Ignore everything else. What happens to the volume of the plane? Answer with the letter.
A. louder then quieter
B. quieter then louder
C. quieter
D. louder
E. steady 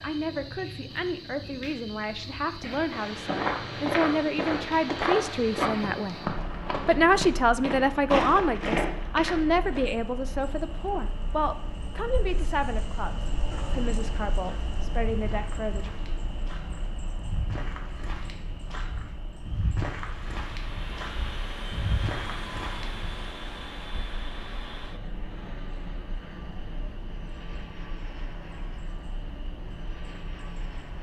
C.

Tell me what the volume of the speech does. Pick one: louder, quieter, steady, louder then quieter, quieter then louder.
louder then quieter.